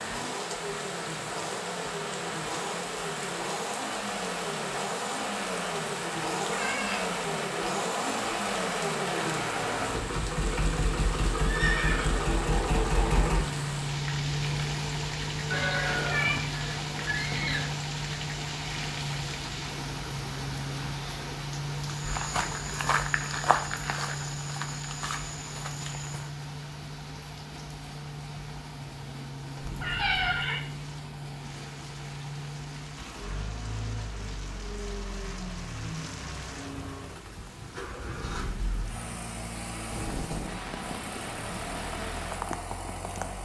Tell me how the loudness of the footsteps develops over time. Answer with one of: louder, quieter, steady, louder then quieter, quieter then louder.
quieter.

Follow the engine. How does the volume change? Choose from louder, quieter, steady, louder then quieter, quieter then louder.
quieter.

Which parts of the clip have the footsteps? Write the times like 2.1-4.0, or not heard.
21.9-26.3.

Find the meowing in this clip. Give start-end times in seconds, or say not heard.
6.5-7.1, 15.5-16.4, 29.6-30.4.